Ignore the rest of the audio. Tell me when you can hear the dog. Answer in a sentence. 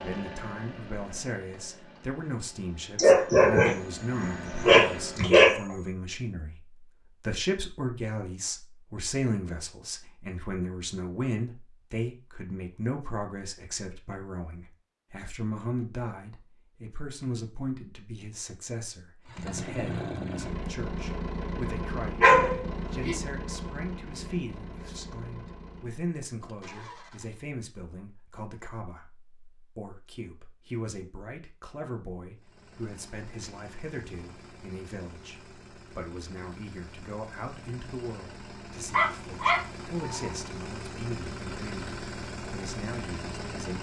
You can hear the dog from 3.0 to 5.8 s, from 22.2 to 23.1 s and from 38.9 to 40.3 s.